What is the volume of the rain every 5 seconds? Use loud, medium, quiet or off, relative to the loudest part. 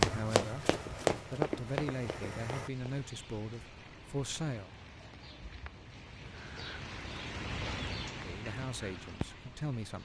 medium, loud.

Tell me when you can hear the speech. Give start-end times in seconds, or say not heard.
0.0-4.7, 8.2-10.0.